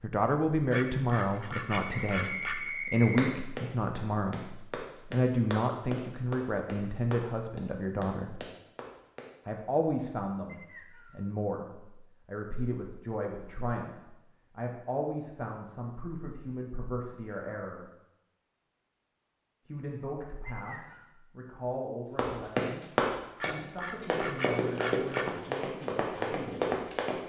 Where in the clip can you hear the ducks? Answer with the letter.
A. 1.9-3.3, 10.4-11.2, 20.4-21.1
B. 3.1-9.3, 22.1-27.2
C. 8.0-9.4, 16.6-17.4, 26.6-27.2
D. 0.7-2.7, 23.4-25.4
D.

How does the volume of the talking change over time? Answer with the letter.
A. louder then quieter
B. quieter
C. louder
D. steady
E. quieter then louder
B.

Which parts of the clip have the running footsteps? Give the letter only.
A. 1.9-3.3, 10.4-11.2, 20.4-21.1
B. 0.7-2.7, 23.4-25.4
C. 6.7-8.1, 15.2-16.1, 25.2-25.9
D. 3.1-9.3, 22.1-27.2
D.